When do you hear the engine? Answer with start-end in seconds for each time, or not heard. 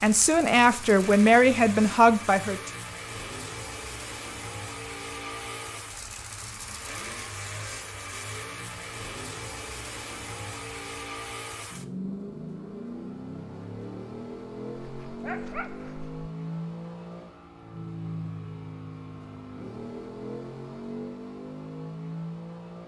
0.0-22.8.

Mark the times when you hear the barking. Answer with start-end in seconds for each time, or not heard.
14.8-16.2.